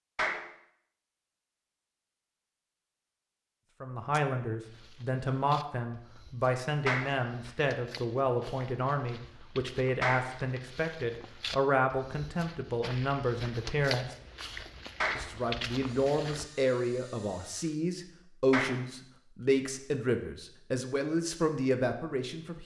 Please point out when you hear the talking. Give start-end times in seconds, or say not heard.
3.8-14.2, 15.2-22.6.